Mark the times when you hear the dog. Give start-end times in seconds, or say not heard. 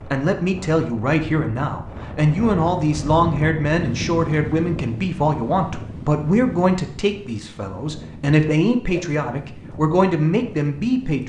not heard.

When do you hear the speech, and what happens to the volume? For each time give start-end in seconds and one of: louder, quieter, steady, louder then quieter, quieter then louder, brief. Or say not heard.
0.1-11.2 steady.